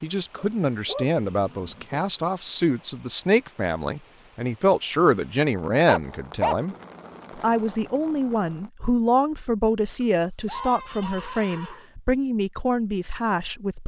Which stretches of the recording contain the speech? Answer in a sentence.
You can hear the speech from 0.0 to 6.8 s and from 7.3 to 13.8 s.